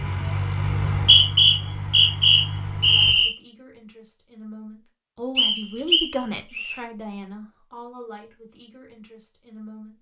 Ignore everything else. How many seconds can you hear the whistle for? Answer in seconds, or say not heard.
4 s.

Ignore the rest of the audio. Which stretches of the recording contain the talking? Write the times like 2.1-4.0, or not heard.
2.8-9.9.